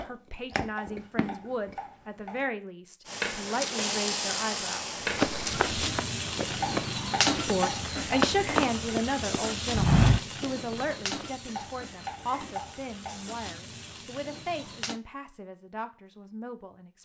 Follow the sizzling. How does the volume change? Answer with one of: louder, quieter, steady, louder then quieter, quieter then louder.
quieter.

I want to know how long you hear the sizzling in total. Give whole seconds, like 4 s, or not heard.
12 s.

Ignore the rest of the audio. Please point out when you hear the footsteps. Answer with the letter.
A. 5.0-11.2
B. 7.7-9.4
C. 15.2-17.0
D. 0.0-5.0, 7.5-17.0
A.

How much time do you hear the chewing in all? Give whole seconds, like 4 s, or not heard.
2 s.